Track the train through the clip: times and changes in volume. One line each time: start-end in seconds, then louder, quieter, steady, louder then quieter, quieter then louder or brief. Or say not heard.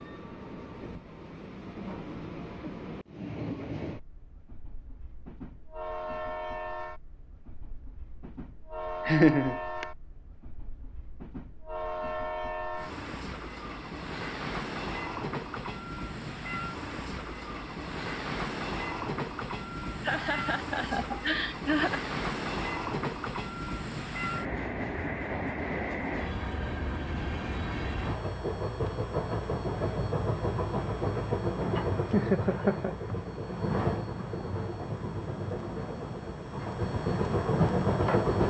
0.0-38.4 louder.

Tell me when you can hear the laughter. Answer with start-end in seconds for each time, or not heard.
9.1-9.8, 20.0-22.0, 32.1-33.0.